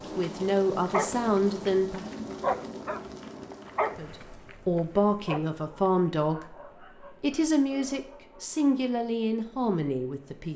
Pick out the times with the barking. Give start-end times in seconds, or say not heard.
0.8-8.8.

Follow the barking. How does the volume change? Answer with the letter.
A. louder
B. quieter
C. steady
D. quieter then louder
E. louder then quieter
B.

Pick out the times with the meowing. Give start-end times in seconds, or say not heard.
not heard.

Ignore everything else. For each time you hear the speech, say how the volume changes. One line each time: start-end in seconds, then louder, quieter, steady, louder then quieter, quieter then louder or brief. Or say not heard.
0.1-2.1 brief
4.0-10.5 steady.